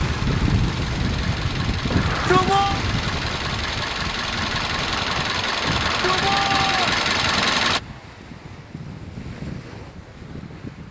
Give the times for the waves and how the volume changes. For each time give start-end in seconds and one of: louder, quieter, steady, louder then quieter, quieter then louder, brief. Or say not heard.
0.0-10.8 quieter.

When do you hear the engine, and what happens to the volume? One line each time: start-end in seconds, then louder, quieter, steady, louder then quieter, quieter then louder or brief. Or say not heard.
0.0-7.8 louder.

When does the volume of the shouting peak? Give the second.
2 s.